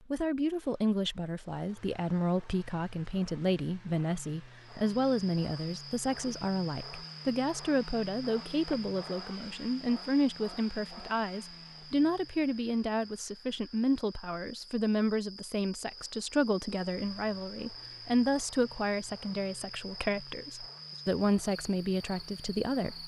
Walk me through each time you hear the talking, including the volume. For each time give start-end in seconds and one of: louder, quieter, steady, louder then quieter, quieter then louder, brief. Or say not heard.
0.1-23.0 steady.